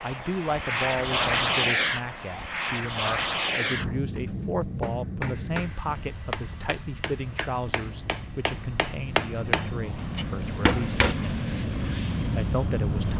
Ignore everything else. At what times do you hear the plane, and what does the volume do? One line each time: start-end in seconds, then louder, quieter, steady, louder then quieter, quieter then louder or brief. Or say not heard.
0.0-13.1 quieter then louder.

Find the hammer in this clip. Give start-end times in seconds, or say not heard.
3.6-11.2.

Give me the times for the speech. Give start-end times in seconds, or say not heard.
0.0-13.1.